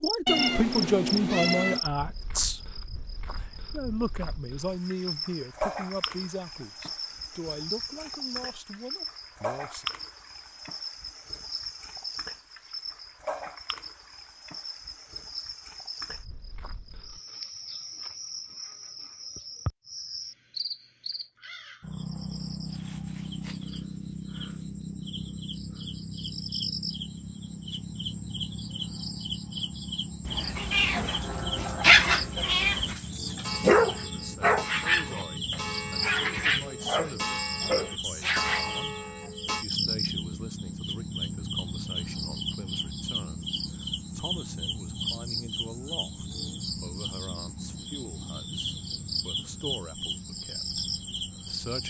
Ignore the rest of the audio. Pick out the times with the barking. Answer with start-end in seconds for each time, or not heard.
30.4-39.3.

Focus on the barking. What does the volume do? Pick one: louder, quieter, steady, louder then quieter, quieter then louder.
quieter.